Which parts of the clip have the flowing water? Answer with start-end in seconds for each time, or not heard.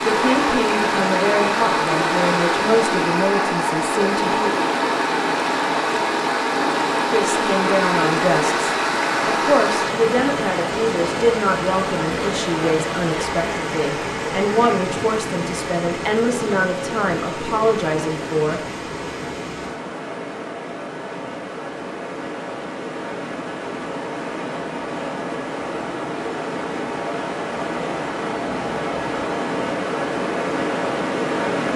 0.0-31.7.